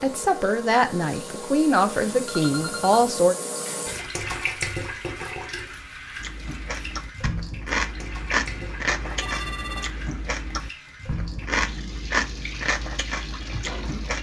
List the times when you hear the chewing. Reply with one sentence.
The chewing can be heard from 6.2 to 14.1 s.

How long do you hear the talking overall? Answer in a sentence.
You can hear the talking for 3 seconds altogether.